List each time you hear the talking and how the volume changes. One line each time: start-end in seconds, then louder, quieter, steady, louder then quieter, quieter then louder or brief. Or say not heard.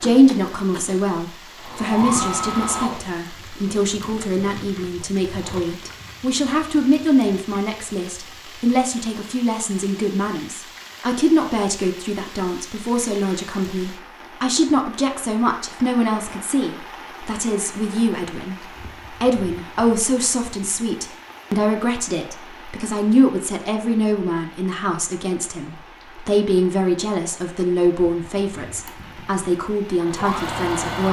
0.0-31.0 steady.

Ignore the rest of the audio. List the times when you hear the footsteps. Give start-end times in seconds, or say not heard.
not heard.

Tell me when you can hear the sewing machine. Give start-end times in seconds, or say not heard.
0.0-5.6, 28.9-31.0.